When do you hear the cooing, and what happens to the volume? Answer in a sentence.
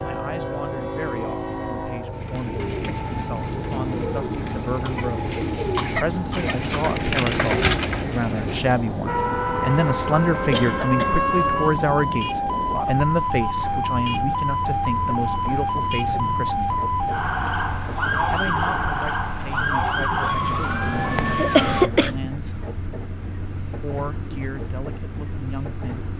The cooing can be heard from 2.1 to 8.8 s, getting louder.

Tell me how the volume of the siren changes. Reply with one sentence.
The volume of the siren stays about the same.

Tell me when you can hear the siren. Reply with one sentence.
You can hear the siren from 9.1 to 21.9 s.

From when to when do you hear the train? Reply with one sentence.
The train can be heard from 0.0 to 26.1 s.